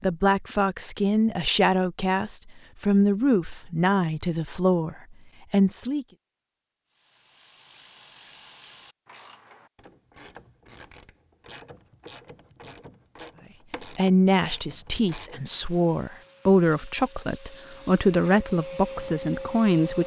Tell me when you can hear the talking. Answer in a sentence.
You can hear the talking from 0.0 to 6.0 s and from 13.9 to 20.0 s.